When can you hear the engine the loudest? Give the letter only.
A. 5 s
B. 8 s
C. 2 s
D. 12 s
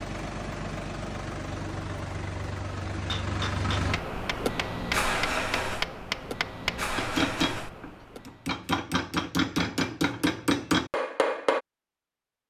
A.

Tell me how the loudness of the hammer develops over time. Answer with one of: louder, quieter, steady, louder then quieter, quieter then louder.
louder.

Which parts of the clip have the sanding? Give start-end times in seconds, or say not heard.
not heard.